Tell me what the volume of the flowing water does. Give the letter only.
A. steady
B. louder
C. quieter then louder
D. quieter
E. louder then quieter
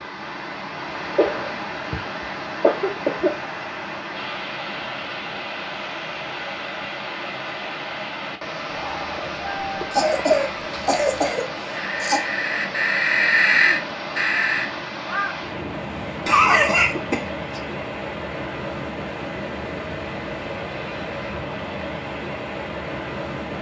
A.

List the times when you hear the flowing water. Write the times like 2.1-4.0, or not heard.
0.0-23.5.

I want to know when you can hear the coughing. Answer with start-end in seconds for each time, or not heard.
1.1-3.3, 9.9-12.2, 16.2-17.6.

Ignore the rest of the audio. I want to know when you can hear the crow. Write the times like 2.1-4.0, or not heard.
8.7-15.4.